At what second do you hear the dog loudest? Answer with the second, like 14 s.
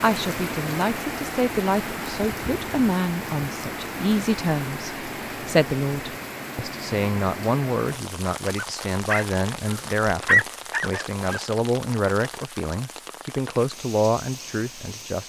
10 s.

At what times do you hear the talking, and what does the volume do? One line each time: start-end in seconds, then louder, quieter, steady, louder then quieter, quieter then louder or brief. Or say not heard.
0.0-15.2 steady.